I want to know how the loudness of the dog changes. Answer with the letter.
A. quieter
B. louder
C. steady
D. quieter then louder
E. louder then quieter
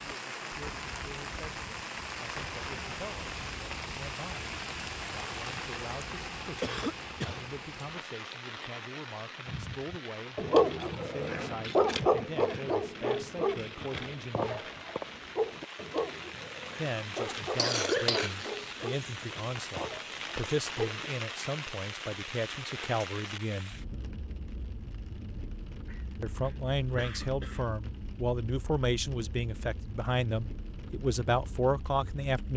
A.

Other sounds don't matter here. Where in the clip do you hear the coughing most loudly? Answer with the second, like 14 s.
18 s.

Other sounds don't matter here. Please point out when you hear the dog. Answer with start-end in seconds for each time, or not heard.
9.4-21.1.